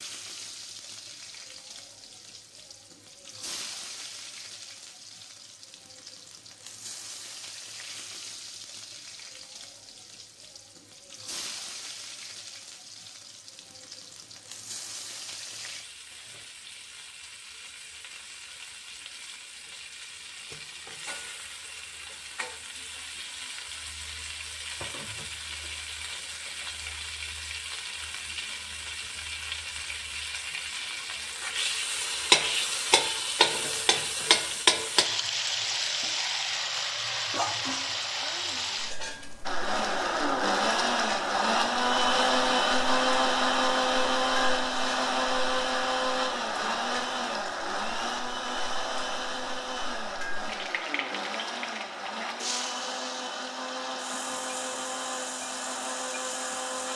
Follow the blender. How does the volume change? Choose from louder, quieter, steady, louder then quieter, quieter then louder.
quieter.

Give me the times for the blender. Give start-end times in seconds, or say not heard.
39.5-56.9.